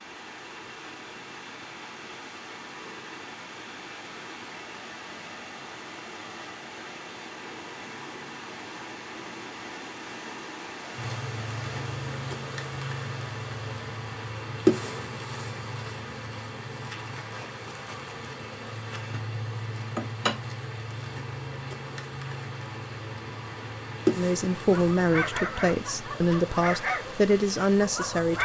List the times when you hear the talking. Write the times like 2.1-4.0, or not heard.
24.1-28.3.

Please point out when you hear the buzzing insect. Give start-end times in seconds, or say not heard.
10.9-28.3.